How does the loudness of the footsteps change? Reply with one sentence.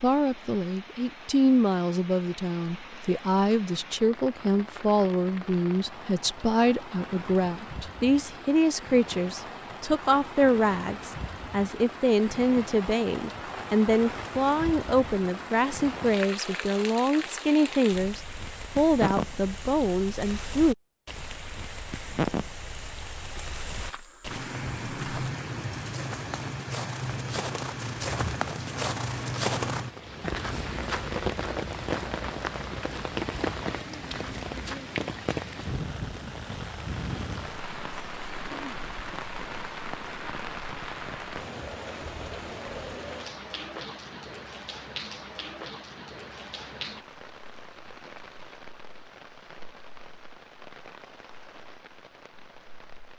The volume of the footsteps goes up, then down.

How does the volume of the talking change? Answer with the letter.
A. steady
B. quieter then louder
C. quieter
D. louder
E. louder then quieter
A.